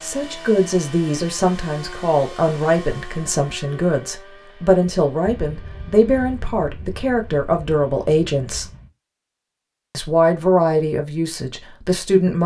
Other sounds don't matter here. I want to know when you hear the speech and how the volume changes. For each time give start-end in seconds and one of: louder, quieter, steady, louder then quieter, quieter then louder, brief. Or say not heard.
0.0-8.7 steady
9.9-12.4 brief.